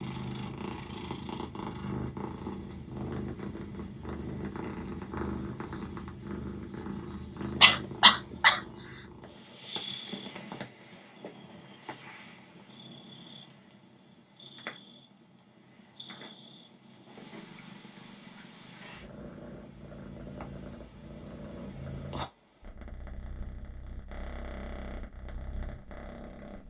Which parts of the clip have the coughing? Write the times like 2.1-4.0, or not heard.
7.6-8.6.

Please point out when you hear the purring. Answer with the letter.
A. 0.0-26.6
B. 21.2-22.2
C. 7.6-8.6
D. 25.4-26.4
A.